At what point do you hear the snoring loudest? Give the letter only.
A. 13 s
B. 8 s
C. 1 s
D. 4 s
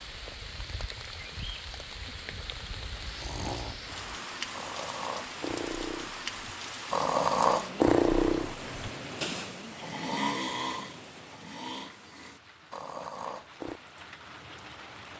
B.